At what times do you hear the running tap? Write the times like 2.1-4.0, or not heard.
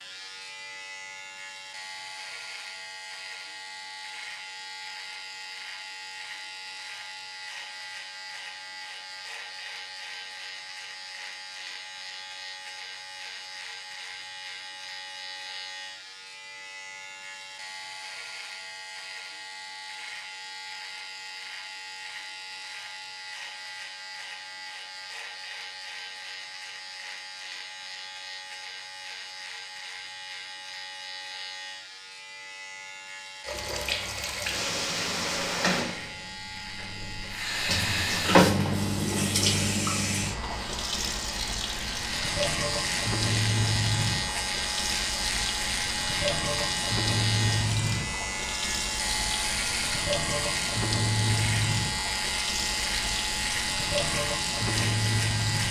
33.5-55.6.